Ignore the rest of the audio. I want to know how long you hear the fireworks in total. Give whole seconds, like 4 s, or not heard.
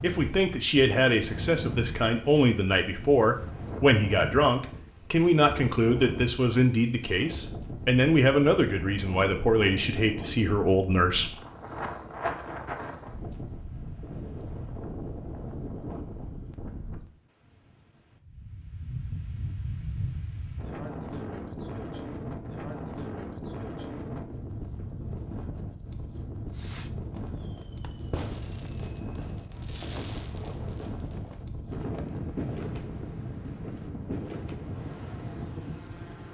8 s.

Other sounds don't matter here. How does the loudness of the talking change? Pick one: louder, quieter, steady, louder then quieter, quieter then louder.
steady.